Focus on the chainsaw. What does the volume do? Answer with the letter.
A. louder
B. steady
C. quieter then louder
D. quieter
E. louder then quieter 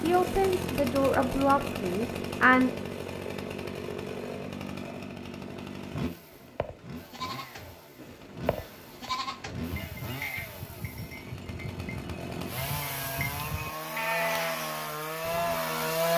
C.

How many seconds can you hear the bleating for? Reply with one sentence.
The bleating can be heard for 9 seconds in total.